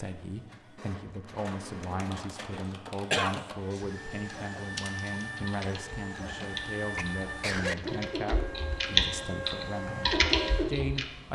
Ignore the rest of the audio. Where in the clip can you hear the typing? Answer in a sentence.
The typing can be heard from 1.9 to 11.1 s.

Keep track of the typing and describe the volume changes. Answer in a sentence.
The loudness of the typing goes up.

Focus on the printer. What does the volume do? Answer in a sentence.
The loudness of the printer goes up.